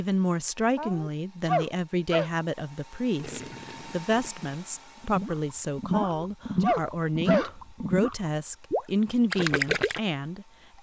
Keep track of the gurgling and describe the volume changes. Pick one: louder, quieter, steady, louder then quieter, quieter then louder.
louder.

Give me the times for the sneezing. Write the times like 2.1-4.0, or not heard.
0.8-2.3, 5.9-7.5.